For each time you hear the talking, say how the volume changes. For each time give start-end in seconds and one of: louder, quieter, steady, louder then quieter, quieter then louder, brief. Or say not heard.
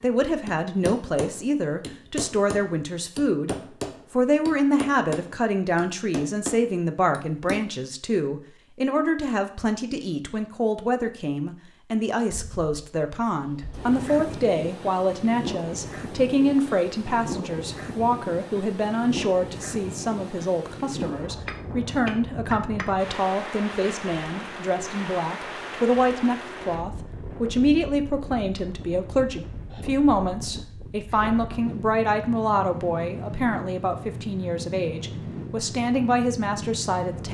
0.0-37.3 steady.